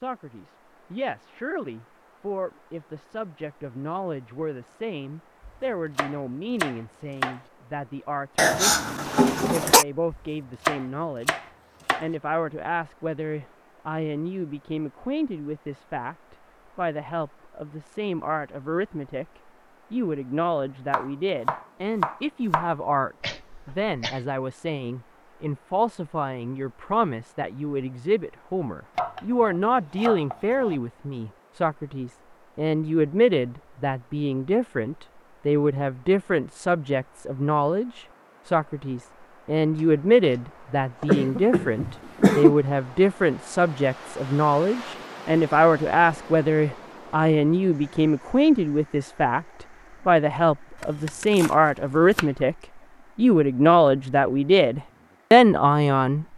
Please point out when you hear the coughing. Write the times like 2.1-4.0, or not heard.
8.3-9.8, 23.2-24.2, 41.0-42.5.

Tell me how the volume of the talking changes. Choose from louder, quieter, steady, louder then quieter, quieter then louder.
louder.